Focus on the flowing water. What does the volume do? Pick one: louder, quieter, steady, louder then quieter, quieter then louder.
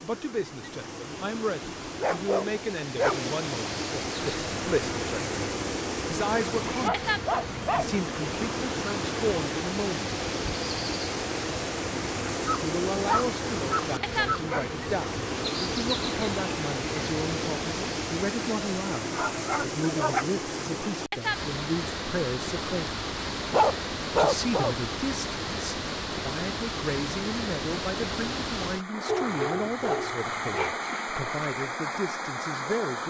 steady.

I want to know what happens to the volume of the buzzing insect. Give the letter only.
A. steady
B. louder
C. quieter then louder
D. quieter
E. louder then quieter
A.